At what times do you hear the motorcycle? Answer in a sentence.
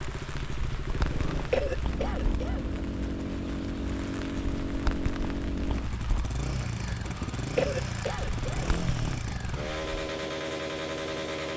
The motorcycle can be heard from 0.0 to 11.5 s.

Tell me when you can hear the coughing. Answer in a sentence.
You can hear the coughing from 1.5 to 2.7 s and from 7.5 to 8.7 s.